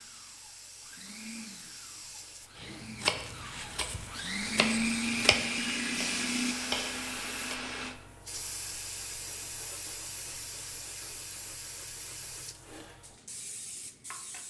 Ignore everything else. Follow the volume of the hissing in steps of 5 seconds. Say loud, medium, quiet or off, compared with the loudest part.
medium, loud, loud.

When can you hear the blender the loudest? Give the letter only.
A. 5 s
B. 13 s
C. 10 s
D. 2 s
A.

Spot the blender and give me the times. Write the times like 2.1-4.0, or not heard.
0.0-8.0.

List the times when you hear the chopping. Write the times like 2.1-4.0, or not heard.
2.6-7.8.